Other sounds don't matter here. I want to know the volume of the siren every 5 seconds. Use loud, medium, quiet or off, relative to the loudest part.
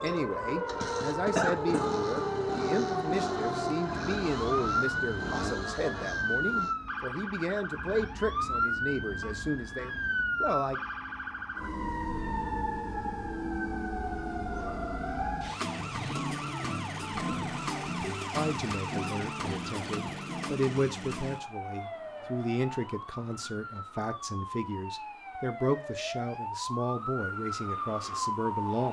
loud, loud, loud, loud, medium, loud.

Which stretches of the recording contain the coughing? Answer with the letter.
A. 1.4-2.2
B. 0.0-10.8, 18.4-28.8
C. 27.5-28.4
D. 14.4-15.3
A.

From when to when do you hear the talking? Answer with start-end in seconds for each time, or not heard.
0.0-10.8, 18.4-28.8.